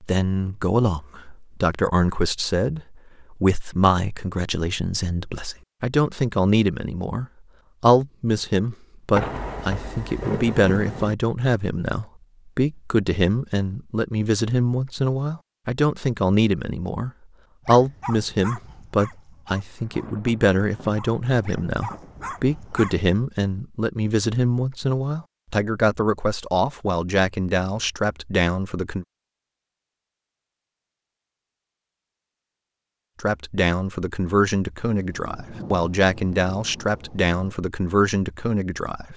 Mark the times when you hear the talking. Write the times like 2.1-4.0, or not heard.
0.0-29.1, 33.2-39.1.